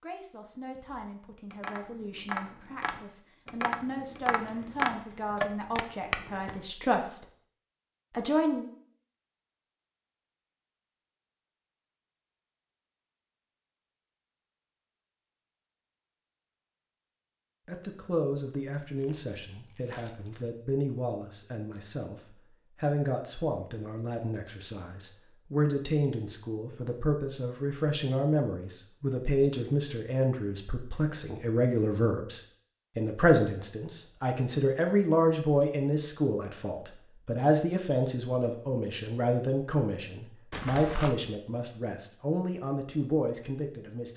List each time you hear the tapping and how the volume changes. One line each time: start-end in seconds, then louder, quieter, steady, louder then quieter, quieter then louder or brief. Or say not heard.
0.8-6.2 louder.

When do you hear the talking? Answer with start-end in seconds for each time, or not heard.
0.0-7.2, 8.1-8.7, 17.6-44.1.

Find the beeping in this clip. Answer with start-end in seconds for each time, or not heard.
not heard.